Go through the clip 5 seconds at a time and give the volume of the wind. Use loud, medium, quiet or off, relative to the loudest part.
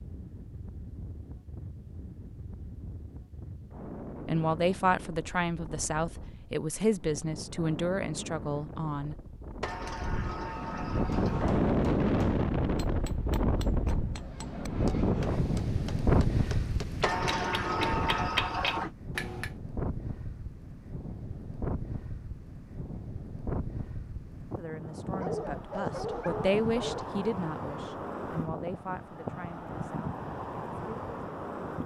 quiet, quiet, loud, loud, medium, medium, medium.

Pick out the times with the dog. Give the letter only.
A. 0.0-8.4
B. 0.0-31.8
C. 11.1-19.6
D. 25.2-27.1
D.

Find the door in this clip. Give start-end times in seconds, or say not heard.
9.6-11.6, 17.0-18.9.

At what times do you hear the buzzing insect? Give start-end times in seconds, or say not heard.
not heard.